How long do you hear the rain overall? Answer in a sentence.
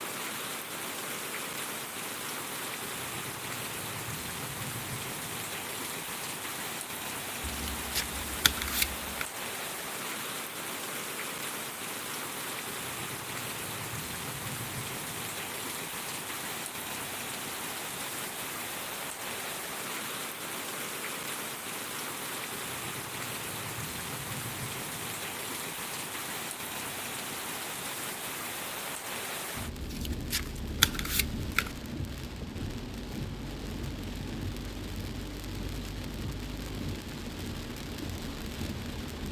You can hear the rain for 39 seconds altogether.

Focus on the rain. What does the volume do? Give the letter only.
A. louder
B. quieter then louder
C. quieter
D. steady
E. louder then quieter
D.